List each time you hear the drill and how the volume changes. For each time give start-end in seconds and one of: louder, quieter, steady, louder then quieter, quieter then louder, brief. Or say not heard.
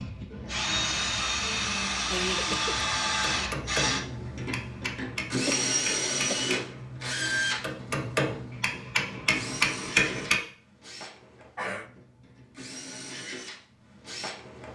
0.0-14.7 quieter.